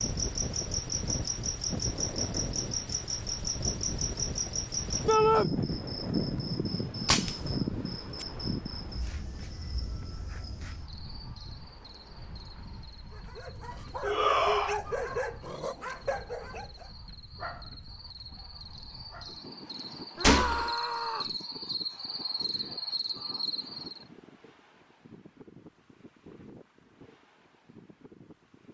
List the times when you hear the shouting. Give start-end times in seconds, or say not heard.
5.0-5.5, 14.0-14.8, 20.1-21.4.